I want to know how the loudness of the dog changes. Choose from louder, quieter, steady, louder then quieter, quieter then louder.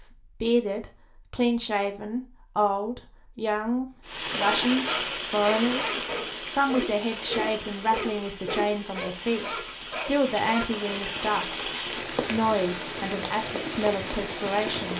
steady.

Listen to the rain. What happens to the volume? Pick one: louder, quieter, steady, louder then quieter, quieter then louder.
quieter then louder.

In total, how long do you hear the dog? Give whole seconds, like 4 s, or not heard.
6 s.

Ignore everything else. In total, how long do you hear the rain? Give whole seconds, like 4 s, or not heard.
11 s.